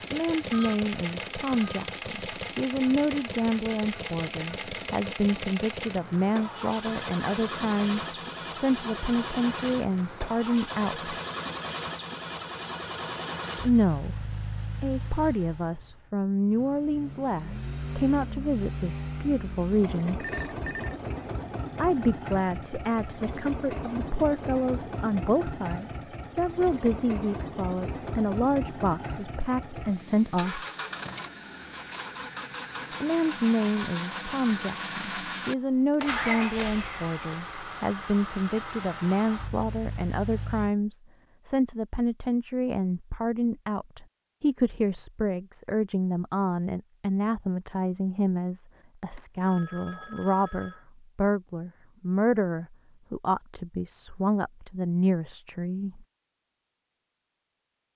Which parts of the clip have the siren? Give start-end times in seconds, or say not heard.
not heard.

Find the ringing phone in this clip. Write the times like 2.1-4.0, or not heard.
0.5-2.3, 20.2-20.9, 49.1-50.9.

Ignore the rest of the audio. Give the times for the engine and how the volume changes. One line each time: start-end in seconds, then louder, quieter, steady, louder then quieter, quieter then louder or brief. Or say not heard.
0.0-40.8 steady.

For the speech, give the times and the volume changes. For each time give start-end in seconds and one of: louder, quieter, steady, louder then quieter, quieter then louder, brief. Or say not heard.
0.1-11.1 steady
13.6-20.2 louder
21.8-30.6 steady
33.0-56.0 steady.